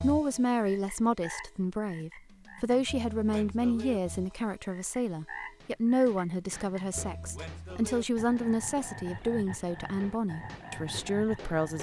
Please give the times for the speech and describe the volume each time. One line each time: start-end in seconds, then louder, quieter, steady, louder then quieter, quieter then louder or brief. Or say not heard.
0.0-11.7 steady.